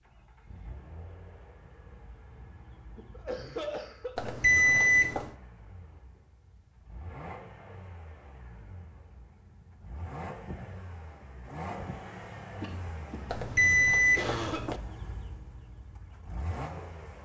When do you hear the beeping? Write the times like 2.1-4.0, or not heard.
4.2-5.3, 13.3-14.8.